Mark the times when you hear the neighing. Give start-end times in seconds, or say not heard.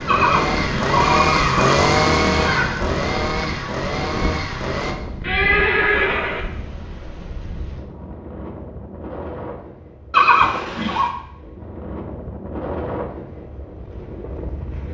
0.1-2.7, 5.2-6.5, 10.1-11.1.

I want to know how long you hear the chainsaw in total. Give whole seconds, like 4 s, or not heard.
5 s.